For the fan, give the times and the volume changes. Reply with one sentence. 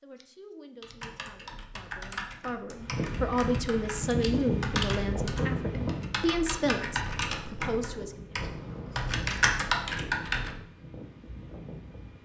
The fan can be heard from 2.8 to 12.2 s, getting quieter.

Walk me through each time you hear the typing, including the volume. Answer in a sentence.
You can hear the typing from 0.8 to 10.6 s, getting louder.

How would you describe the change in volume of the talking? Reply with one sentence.
The loudness of the talking goes up.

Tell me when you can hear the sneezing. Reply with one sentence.
The sneezing can't be heard in this clip.